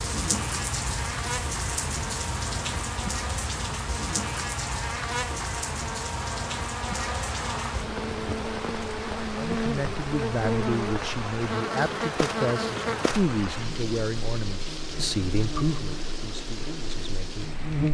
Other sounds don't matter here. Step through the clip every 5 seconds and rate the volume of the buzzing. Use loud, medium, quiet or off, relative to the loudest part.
medium, loud, loud, loud.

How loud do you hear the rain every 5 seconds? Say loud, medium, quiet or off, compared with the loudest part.
loud, loud, loud, medium.